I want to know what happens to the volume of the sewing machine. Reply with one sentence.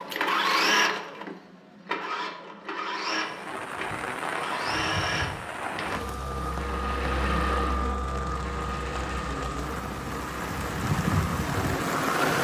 The volume of the sewing machine goes down.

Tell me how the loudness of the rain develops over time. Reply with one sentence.
The volume of the rain goes down, then up.